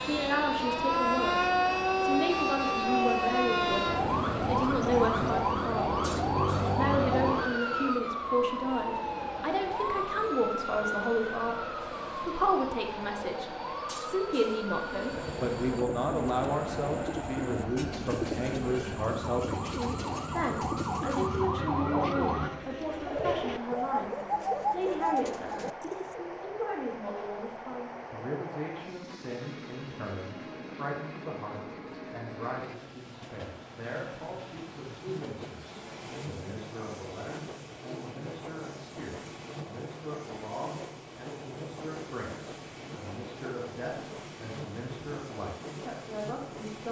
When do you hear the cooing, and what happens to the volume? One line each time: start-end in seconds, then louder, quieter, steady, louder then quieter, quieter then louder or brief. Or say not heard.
14.8-26.4 louder.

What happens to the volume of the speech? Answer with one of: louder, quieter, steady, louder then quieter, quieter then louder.
quieter.